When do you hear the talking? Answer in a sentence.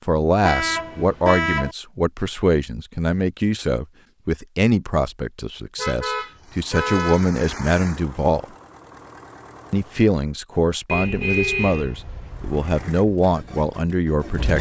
The talking can be heard from 0.1 to 8.4 s and from 9.7 to 14.5 s.